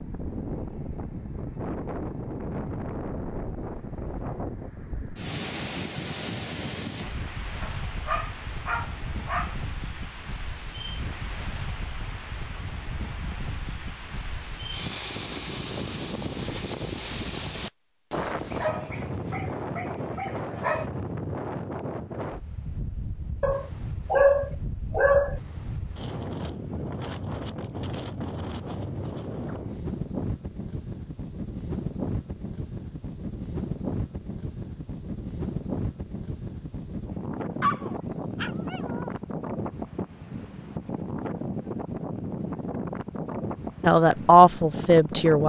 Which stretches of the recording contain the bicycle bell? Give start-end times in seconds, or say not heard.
not heard.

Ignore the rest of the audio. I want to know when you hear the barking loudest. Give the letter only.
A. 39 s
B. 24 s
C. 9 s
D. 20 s
B.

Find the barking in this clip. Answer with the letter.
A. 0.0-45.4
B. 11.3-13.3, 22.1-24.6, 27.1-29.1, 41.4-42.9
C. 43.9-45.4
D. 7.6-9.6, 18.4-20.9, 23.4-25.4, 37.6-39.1
D.